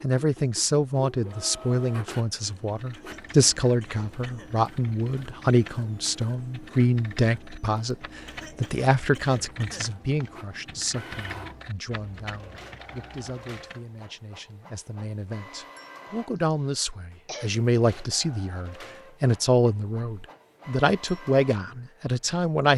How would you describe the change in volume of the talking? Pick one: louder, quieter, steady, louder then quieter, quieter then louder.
quieter then louder.